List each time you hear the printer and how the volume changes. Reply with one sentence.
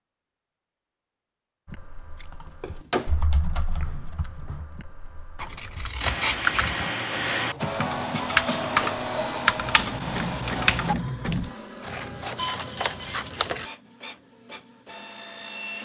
The printer can be heard from 7.3 to 15.8 s, getting quieter.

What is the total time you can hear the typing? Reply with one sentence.
You can hear the typing for 10 seconds altogether.